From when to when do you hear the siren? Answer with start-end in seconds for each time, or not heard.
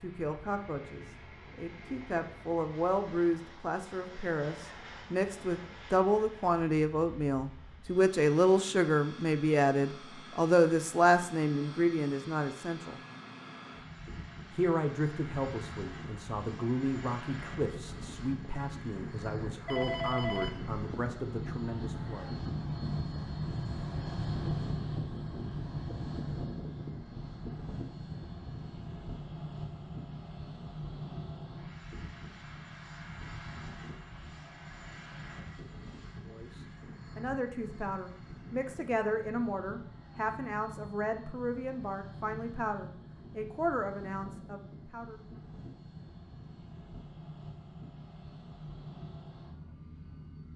not heard.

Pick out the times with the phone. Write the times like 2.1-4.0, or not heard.
19.6-20.8.